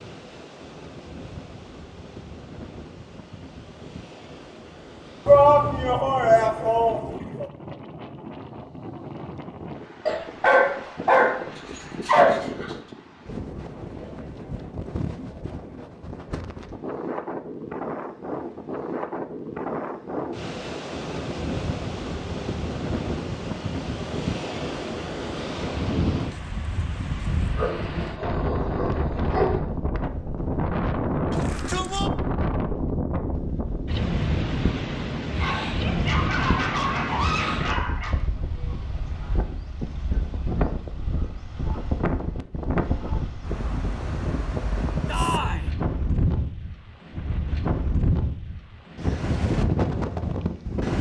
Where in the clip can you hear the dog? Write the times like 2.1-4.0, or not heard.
10.1-12.8, 27.6-29.6, 35.4-38.1.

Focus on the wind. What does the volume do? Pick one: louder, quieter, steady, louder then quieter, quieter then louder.
louder.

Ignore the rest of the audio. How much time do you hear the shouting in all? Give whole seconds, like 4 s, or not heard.
4 s.